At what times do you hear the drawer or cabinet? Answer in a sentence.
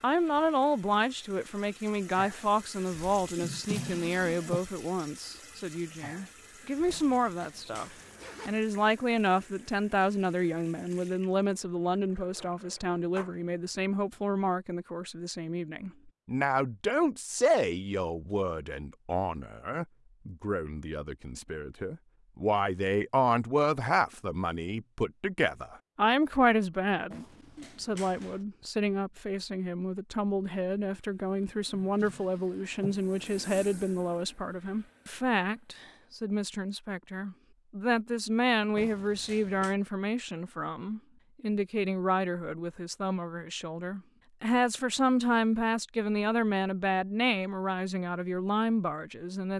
You can hear the drawer or cabinet from 3.4 to 4.6 s and from 31.6 to 33.0 s.